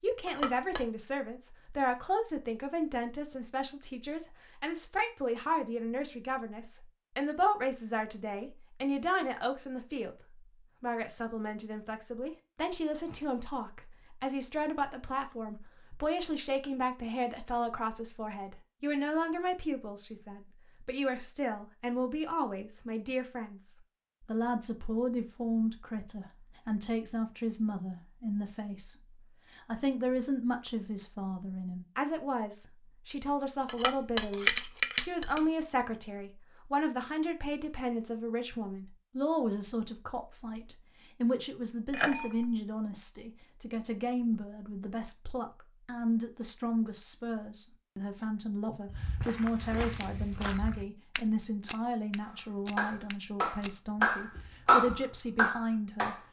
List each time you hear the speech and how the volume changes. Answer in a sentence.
The speech can be heard from 0.0 to 56.1 s, at a steady volume.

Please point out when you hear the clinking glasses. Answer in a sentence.
You can hear the clinking glasses from 0.2 to 0.8 s, from 33.6 to 35.4 s and from 41.9 to 42.5 s.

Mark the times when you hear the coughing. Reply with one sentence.
The coughing can't be heard in this clip.